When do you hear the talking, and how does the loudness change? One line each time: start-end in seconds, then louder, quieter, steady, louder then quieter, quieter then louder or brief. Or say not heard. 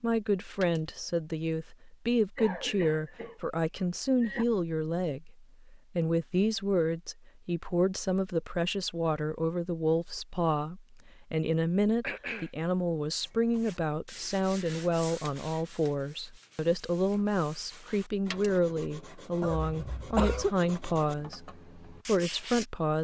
0.0-22.9 steady.